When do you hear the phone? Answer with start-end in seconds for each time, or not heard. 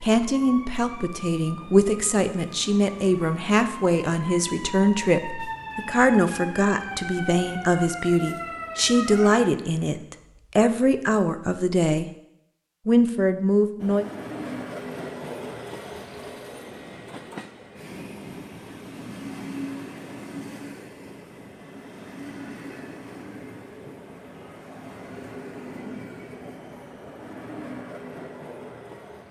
not heard.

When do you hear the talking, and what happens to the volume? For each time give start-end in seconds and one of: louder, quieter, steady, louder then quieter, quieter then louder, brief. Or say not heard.
0.0-12.1 steady
12.8-14.1 brief.